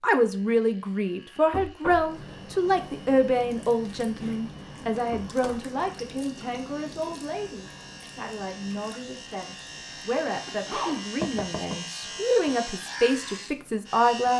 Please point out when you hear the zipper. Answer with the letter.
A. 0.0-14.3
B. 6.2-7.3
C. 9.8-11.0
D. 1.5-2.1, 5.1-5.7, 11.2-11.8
C.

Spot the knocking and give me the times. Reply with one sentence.
The knocking can be heard from 1.5 to 2.1 s, from 5.1 to 5.7 s and from 11.2 to 11.8 s.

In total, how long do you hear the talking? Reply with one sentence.
The talking can be heard for 14 seconds in total.